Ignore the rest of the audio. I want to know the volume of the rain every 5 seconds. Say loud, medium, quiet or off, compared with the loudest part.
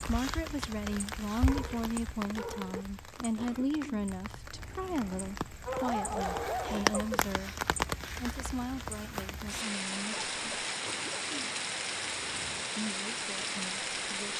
medium, loud, loud.